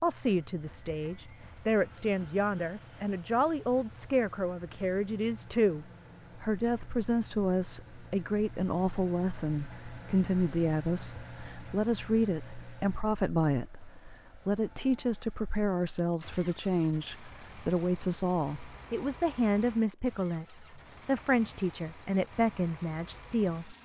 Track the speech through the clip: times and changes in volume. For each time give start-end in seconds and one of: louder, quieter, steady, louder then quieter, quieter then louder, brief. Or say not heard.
0.0-23.8 steady.